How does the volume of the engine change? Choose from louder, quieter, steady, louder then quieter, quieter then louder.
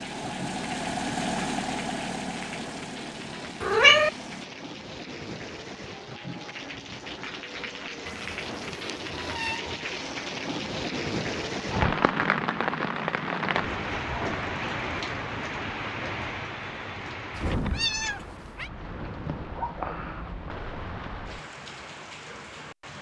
quieter.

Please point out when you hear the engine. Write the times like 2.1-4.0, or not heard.
0.0-4.5.